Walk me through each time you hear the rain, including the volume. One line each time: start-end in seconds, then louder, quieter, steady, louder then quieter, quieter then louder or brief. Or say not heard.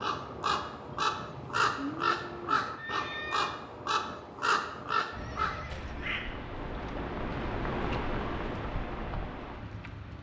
0.0-10.1 quieter then louder.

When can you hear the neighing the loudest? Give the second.
3 s.